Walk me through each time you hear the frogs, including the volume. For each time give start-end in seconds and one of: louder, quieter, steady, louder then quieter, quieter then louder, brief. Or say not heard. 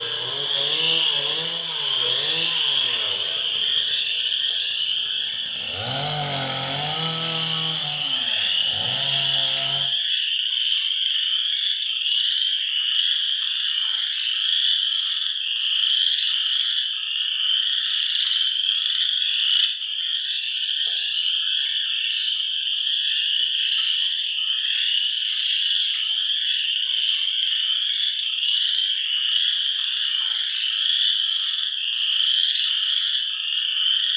0.0-34.1 steady.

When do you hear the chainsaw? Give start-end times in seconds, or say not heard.
0.0-9.9.